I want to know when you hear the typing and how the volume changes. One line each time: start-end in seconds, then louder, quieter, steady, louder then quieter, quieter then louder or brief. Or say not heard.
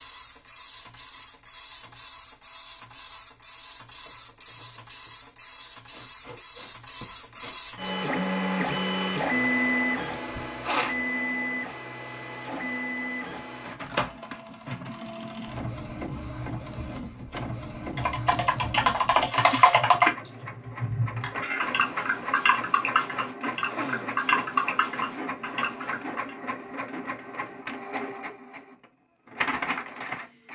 17.9-26.3 quieter.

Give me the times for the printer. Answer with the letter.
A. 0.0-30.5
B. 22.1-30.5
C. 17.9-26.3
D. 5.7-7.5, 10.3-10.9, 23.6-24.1
A.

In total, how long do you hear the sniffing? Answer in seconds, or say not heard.
3 s.